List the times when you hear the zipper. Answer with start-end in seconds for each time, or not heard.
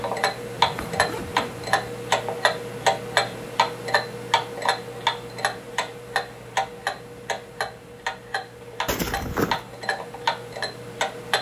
0.6-1.6, 8.8-9.7.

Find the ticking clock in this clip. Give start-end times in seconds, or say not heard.
0.0-11.3.